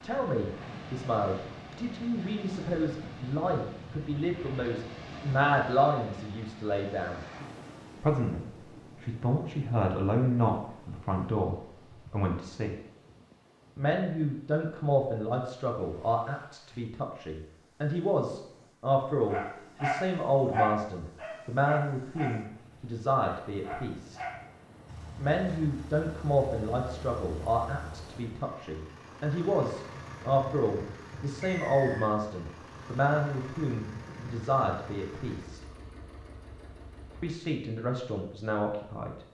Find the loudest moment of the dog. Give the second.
21 s.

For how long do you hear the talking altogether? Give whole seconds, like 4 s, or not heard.
35 s.